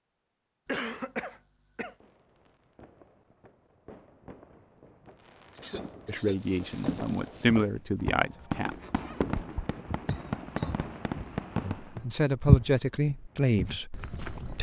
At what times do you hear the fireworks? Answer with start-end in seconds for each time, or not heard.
1.9-12.2.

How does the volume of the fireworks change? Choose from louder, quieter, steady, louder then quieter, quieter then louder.
louder.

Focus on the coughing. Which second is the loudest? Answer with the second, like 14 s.
1 s.